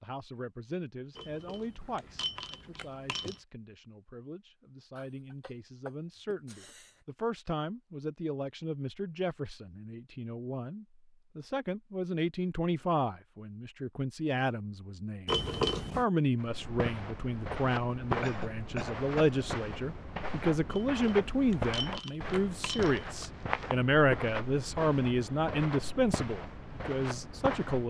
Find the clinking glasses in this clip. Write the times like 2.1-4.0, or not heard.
1.1-3.4, 15.2-16.1, 20.7-23.3.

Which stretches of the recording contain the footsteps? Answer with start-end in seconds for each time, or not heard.
16.4-27.8.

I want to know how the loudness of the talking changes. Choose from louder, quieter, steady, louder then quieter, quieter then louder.
louder.